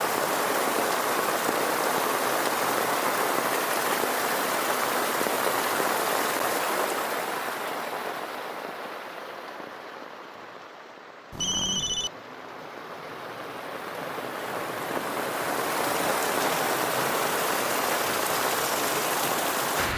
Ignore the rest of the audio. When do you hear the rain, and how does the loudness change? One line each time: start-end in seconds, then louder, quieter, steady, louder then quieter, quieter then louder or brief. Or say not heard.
0.0-19.9 quieter then louder.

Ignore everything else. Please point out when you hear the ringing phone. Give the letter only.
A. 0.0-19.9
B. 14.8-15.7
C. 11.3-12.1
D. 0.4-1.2
C.